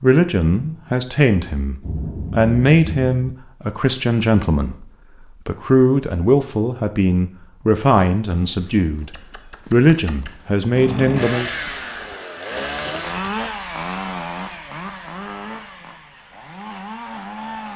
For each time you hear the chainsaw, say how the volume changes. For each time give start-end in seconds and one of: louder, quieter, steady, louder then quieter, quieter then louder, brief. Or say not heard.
10.7-17.7 quieter.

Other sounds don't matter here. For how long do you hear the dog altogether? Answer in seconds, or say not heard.
not heard.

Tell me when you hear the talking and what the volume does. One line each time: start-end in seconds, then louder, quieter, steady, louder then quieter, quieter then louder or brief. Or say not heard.
0.0-11.5 steady.